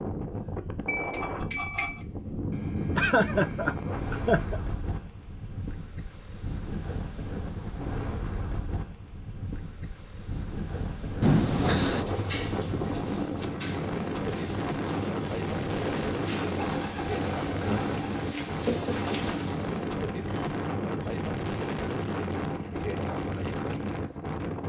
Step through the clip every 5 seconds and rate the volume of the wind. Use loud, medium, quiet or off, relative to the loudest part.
loud, medium, loud, loud, loud.